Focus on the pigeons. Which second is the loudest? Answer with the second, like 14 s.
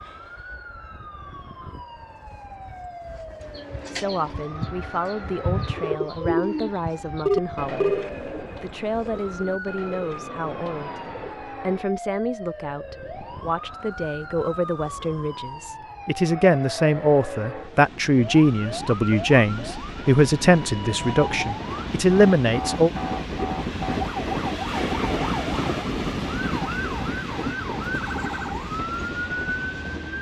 6 s.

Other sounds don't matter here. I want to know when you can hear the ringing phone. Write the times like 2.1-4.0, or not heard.
7.2-8.1.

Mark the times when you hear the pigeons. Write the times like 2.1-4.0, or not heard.
3.0-11.4.